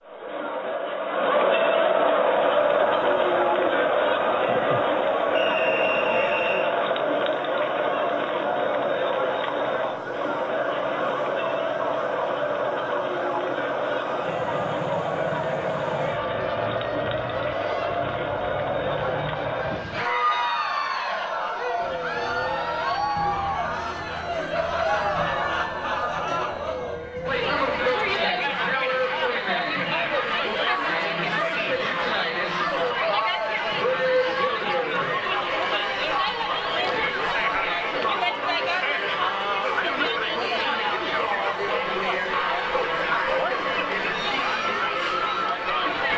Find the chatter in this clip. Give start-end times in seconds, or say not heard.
0.0-46.1.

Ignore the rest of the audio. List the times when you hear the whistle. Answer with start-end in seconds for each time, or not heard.
5.3-6.7.